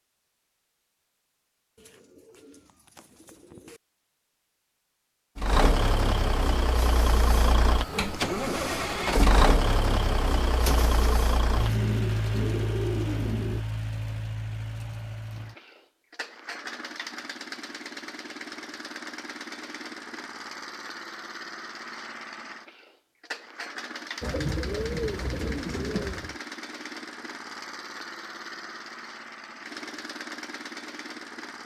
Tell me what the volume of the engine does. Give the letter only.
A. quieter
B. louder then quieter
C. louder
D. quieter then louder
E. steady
A.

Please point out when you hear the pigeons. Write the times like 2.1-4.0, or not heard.
1.8-3.8, 10.7-13.6, 24.2-26.4.